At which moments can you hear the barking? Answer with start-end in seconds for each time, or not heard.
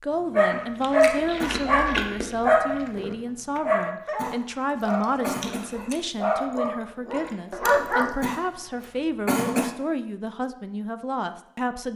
0.3-8.2.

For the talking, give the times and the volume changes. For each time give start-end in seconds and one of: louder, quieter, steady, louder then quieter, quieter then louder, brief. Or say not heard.
0.0-11.9 steady.